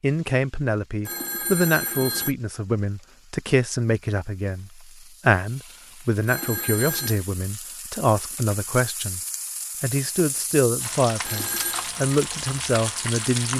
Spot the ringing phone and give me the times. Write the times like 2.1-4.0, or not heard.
1.1-2.4, 6.2-7.2, 11.2-11.9.